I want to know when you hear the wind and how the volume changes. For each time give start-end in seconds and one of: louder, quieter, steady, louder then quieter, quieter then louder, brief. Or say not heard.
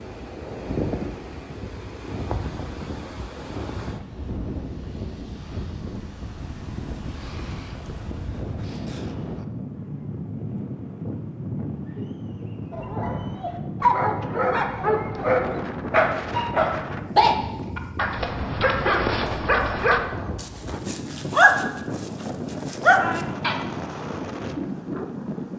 0.0-25.5 steady.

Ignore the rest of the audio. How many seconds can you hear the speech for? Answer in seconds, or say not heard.
not heard.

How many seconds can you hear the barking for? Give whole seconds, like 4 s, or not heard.
11 s.